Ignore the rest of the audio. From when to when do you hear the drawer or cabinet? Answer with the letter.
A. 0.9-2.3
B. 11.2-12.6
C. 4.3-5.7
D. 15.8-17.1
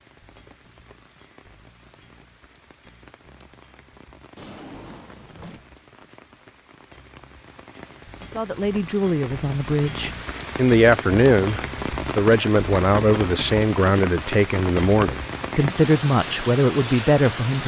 C.